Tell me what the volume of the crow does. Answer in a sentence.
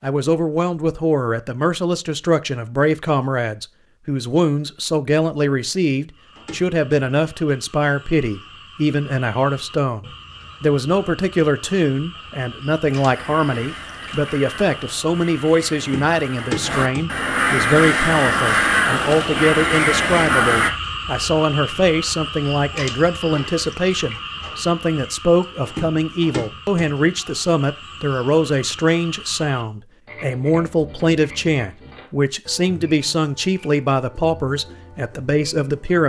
The volume of the crow goes up.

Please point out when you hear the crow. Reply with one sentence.
You can hear the crow from 12.9 to 20.7 s.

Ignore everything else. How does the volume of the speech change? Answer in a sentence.
The loudness of the speech stays about the same.